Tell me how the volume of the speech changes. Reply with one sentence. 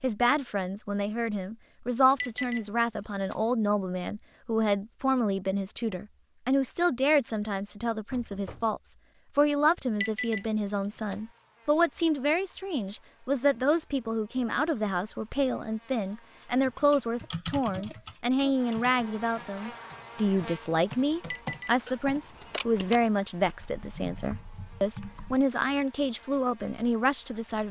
The volume of the speech stays about the same.